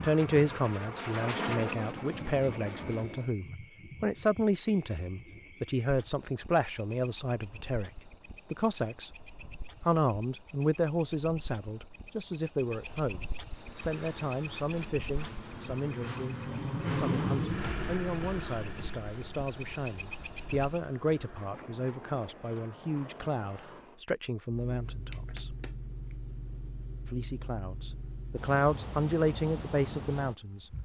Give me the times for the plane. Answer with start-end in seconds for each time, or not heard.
0.0-3.4, 13.5-24.1.